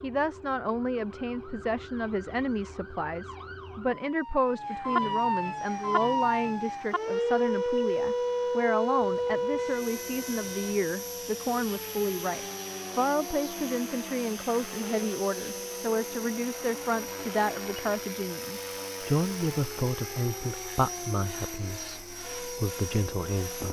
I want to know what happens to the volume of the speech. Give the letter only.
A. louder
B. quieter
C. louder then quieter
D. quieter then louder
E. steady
E.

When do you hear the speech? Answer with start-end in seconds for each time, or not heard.
0.0-23.6.